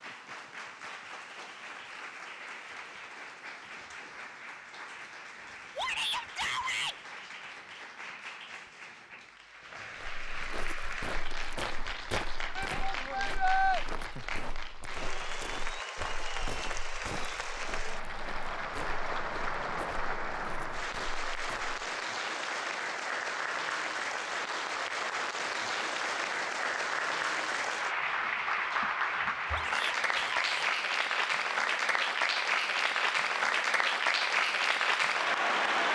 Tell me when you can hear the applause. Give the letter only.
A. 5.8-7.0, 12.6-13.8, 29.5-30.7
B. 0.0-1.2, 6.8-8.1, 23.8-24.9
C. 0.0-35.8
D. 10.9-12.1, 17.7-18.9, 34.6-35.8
C.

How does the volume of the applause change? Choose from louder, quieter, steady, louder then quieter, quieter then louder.
louder.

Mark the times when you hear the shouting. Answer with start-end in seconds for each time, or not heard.
5.8-7.0, 12.6-13.8, 29.5-30.7.